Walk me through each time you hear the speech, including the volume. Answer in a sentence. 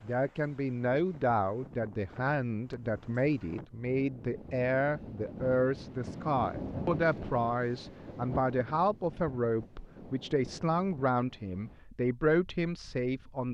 You can hear the speech from 0.0 to 13.4 s, at a steady volume.